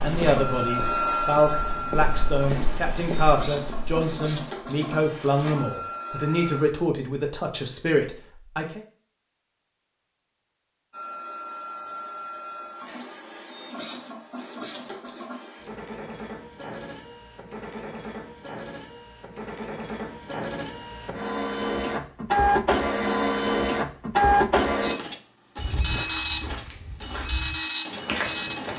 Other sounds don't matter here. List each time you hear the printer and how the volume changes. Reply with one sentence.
The printer can be heard from 0.0 to 6.7 s, getting quieter; and from 10.9 to 28.7 s, getting louder.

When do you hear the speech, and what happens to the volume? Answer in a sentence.
You can hear the speech from 0.0 to 8.8 s, at a steady volume.